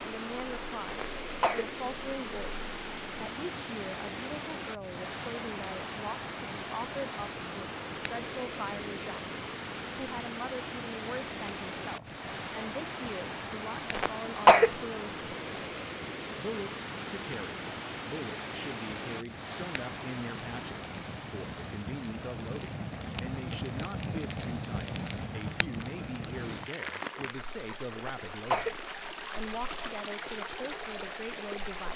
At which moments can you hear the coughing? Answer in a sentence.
You can hear the coughing from 0.9 to 1.6 s, from 13.9 to 14.7 s and from 27.9 to 28.8 s.